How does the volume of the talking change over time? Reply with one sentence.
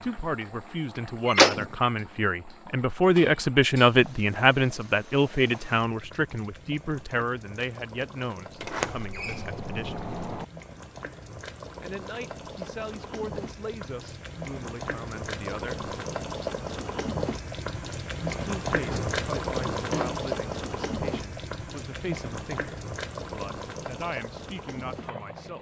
The volume of the talking goes down.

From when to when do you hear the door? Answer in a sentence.
The door can be heard from 1.2 to 1.9 s, from 8.6 to 10.4 s and from 18.9 to 20.2 s.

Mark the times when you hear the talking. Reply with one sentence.
The talking can be heard from 0.0 to 10.0 s, from 11.8 to 15.9 s and from 18.2 to 25.5 s.